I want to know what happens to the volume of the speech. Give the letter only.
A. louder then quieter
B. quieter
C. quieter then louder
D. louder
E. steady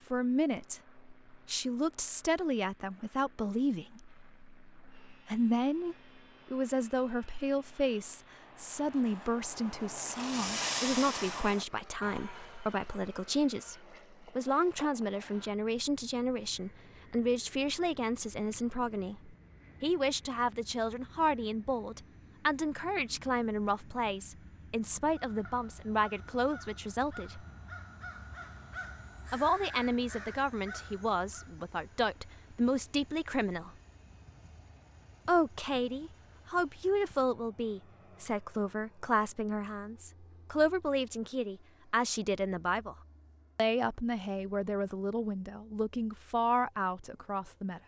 E.